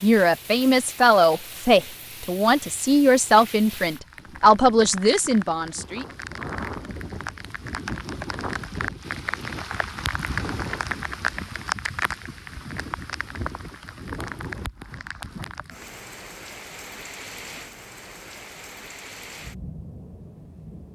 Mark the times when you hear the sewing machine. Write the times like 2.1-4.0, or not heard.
not heard.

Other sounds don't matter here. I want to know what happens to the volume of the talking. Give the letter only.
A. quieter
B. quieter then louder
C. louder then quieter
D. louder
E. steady
E.